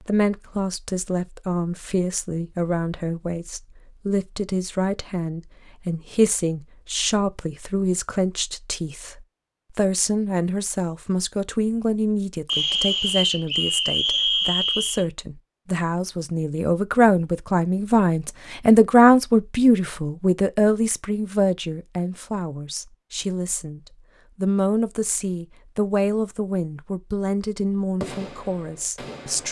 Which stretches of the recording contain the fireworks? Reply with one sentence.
You can hear the fireworks from 28.0 to 29.4 s.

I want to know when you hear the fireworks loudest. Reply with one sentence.
The loudest moment of the fireworks is at 28 seconds.